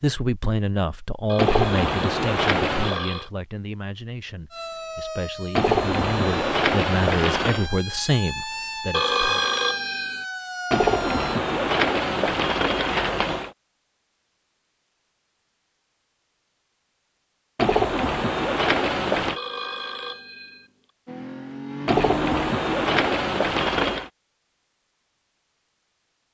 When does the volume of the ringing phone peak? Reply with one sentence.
The volume of the ringing phone peaks at 9 seconds.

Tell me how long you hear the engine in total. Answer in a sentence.
The engine can be heard for 2 seconds in total.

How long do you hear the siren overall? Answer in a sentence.
The siren can be heard for 7 seconds in total.